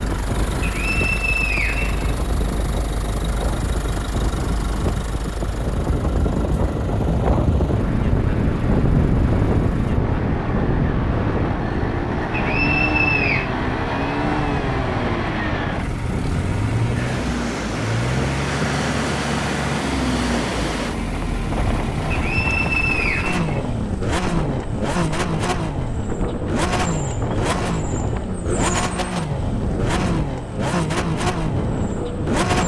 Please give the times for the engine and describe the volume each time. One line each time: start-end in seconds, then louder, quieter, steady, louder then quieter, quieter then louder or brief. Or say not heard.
0.0-32.6 louder.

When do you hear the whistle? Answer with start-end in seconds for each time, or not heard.
0.6-2.1, 12.3-13.5, 22.1-24.1.